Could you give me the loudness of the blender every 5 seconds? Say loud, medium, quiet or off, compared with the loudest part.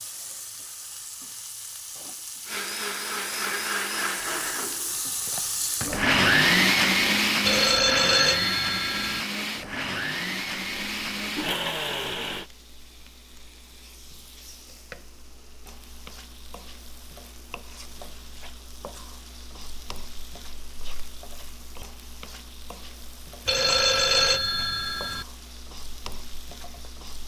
medium, loud, medium, off, off, off.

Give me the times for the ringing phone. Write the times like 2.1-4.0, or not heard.
7.4-9.2, 23.4-25.2.